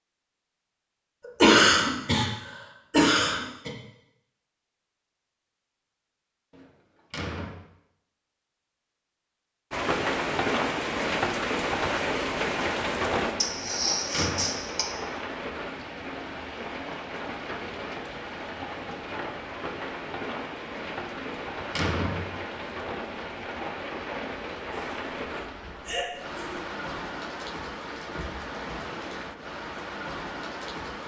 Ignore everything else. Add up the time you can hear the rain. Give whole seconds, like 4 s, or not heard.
21 s.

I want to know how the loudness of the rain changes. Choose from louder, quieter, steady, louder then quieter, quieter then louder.
quieter.